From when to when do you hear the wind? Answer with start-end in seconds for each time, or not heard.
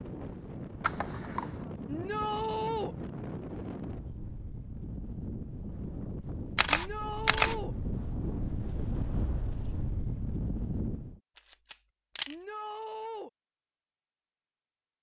0.0-11.2.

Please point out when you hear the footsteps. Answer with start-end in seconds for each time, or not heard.
not heard.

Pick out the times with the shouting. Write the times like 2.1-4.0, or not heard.
1.9-3.0, 6.7-7.8, 12.2-13.3.